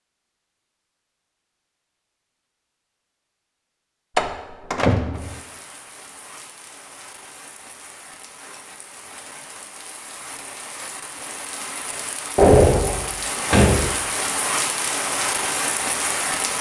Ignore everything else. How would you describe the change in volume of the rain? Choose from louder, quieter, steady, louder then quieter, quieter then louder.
louder.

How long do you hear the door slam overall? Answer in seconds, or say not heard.
3 s.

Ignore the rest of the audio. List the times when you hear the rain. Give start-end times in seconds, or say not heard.
5.1-16.5.